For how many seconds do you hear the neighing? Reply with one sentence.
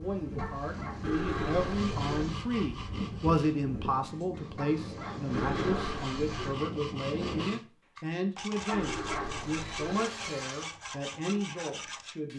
The neighing can be heard for 4 seconds in total.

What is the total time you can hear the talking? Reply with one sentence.
You can hear the talking for 12 seconds altogether.